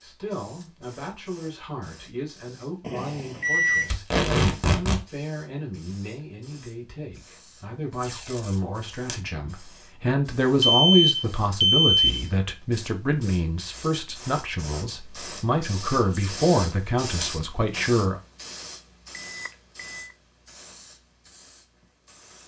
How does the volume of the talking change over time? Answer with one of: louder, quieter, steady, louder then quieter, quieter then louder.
louder.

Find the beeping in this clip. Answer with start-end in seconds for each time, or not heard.
2.8-3.9, 10.6-12.2, 19.1-20.1.